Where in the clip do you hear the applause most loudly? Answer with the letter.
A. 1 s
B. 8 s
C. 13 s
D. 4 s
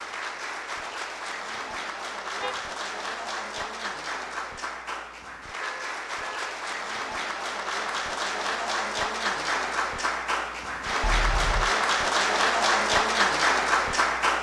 C.